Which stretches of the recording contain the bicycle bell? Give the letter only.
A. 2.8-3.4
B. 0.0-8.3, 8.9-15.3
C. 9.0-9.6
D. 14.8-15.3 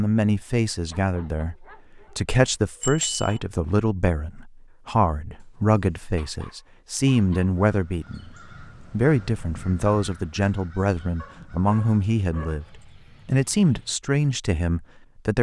A.